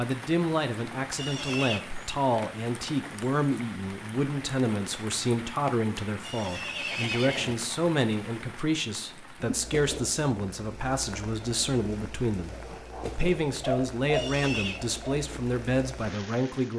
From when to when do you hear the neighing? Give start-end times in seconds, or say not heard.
1.1-1.8, 6.2-7.5, 14.1-14.8.